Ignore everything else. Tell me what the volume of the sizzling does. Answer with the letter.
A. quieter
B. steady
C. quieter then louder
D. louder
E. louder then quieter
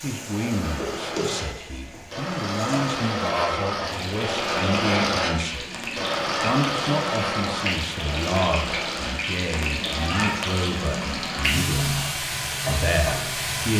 D.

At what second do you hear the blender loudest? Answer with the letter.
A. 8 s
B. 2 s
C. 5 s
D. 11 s
C.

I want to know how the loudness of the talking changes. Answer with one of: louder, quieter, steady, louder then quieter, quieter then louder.
steady.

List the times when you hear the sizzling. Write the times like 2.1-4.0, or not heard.
0.0-13.7.